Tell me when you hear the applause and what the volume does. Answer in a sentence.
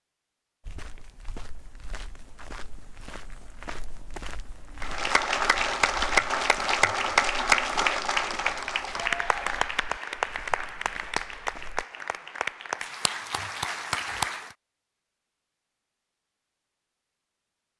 The applause can be heard from 4.8 to 14.6 s, getting quieter.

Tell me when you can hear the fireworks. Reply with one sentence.
The fireworks can't be heard in this clip.